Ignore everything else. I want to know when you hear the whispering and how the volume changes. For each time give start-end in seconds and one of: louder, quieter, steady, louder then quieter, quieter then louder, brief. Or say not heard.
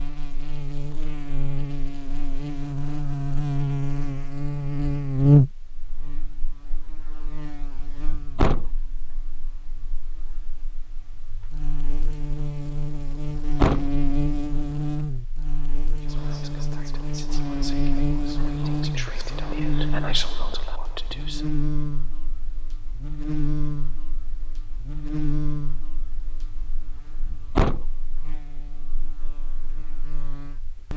16.0-21.4 louder.